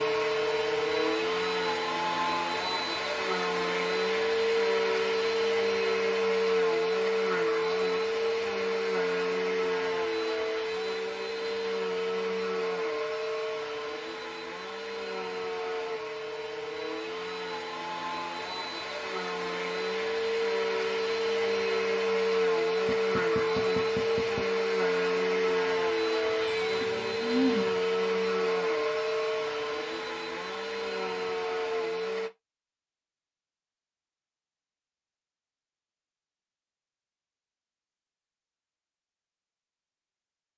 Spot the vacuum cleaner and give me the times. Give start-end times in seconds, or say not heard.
0.0-32.3.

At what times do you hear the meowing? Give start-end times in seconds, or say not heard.
26.2-27.8.